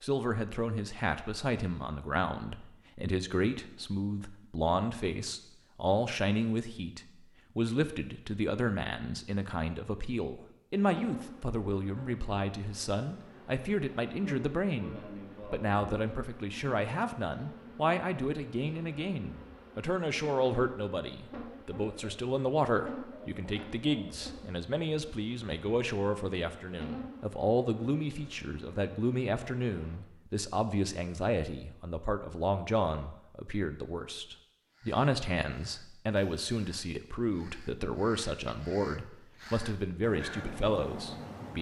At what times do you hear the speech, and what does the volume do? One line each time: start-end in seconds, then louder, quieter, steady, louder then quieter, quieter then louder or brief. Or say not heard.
0.0-41.5 steady.